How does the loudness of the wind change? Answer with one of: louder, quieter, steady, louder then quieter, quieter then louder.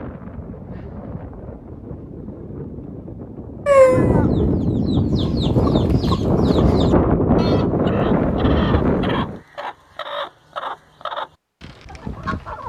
louder.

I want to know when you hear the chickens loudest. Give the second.
4 s.